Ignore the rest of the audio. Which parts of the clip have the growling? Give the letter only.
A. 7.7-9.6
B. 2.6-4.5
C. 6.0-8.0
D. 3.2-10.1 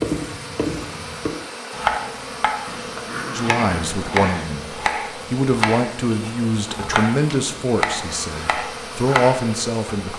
B.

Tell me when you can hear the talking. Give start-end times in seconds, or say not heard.
3.2-10.1.